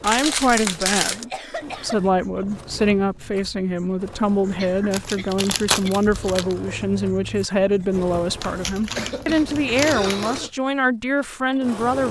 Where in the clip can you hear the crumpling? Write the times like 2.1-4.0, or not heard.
0.0-1.2, 4.9-6.5, 8.4-10.4.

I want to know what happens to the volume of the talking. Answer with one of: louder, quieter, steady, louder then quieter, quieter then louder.
steady.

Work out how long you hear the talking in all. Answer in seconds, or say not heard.
12 s.